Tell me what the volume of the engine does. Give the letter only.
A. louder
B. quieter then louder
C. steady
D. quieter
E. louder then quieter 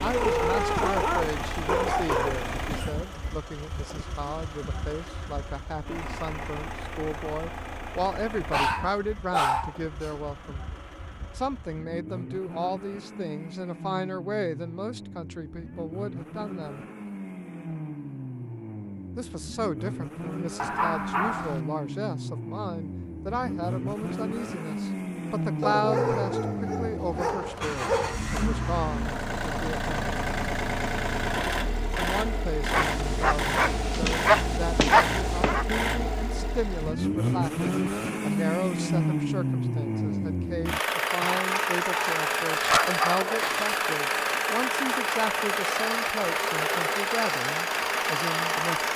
A.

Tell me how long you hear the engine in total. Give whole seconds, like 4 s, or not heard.
49 s.